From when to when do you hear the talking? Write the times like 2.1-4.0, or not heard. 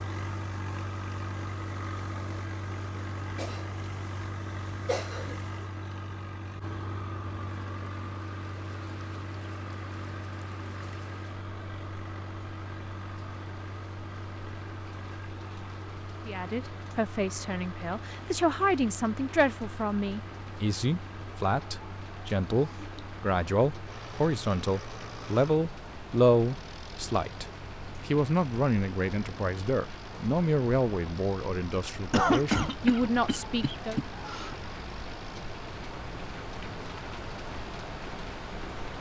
16.2-34.0.